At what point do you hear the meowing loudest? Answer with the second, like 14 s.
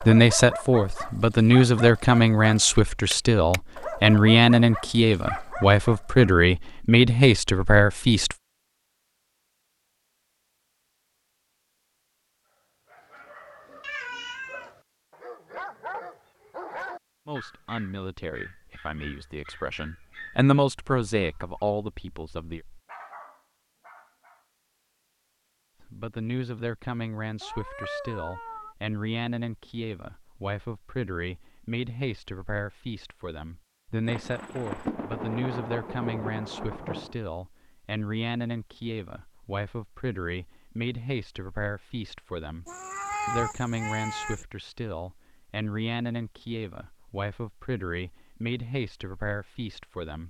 43 s.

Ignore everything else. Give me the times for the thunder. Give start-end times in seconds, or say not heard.
34.0-37.1.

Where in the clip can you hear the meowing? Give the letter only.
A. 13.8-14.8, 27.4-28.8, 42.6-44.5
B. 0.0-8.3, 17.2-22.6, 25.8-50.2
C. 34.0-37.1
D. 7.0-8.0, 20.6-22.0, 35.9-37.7
A.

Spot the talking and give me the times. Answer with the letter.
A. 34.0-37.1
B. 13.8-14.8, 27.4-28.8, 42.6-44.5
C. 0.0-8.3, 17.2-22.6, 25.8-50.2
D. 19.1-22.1
C.